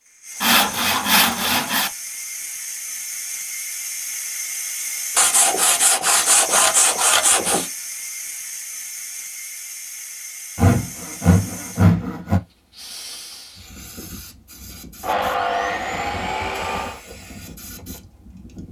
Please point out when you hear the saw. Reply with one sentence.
The saw can be heard from 0.4 to 1.9 s, from 5.2 to 7.7 s, from 10.6 to 12.4 s and from 15.0 to 17.0 s.